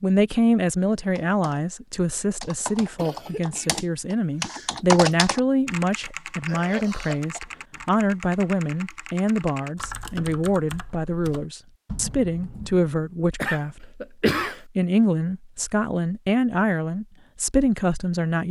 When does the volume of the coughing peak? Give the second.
14 s.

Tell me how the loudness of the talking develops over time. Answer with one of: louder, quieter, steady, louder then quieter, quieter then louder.
steady.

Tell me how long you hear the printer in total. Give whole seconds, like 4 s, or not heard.
not heard.